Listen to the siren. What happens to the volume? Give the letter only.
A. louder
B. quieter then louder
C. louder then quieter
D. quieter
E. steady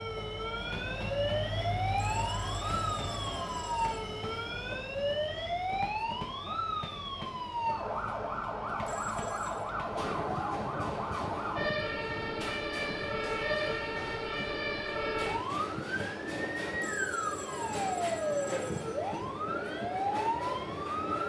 E.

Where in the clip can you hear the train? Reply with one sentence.
You can hear the train from 0.0 to 21.2 s.